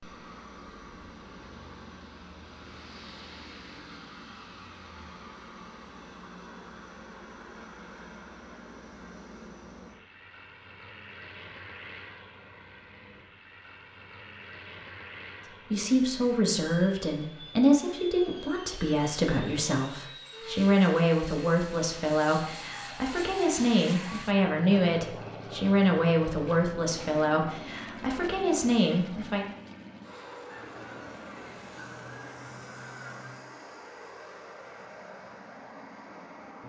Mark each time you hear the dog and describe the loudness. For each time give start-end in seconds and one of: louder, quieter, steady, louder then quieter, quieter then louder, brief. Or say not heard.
not heard.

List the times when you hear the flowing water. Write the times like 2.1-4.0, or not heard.
not heard.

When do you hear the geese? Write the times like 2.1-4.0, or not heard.
30.4-33.5.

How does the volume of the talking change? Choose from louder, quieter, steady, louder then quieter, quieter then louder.
steady.